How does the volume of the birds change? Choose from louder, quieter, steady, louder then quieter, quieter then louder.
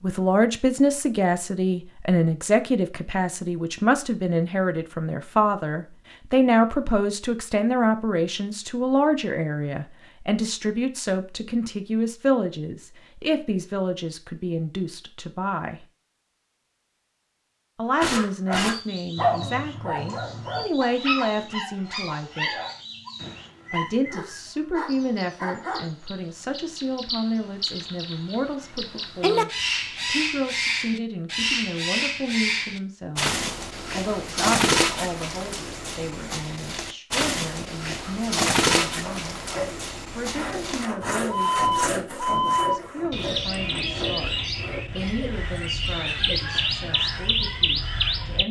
louder.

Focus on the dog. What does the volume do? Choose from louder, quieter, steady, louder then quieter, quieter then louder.
quieter.